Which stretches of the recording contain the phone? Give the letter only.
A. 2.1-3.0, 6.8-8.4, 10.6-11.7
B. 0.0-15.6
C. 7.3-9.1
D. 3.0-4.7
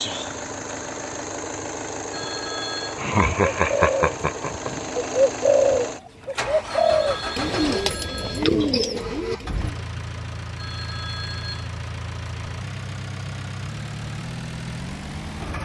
A.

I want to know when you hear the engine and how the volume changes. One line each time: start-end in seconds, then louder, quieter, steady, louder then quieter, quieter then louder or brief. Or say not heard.
0.0-15.6 steady.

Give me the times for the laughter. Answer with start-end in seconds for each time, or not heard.
3.0-4.7.